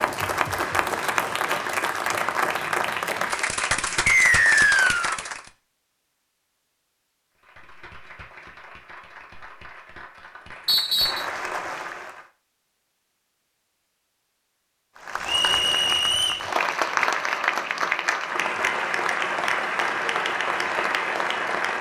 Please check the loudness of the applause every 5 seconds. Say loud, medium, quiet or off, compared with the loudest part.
loud, quiet, medium, loud, loud.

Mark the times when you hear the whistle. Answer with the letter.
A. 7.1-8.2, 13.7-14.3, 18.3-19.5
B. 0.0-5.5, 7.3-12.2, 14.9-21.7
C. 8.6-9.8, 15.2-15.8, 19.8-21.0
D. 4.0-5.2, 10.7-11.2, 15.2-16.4
D.